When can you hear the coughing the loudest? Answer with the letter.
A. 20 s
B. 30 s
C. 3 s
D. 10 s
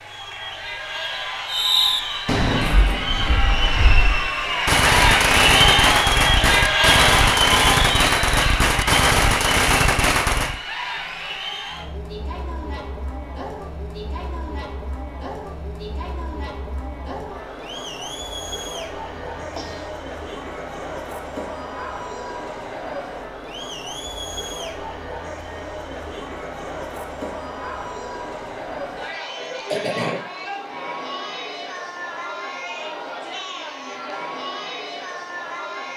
B.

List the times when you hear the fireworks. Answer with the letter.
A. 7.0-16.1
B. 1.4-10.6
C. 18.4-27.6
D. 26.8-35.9
B.